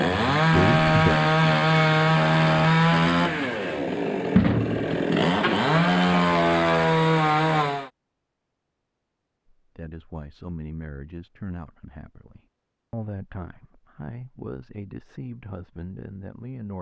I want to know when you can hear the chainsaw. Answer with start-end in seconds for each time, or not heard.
0.0-7.9.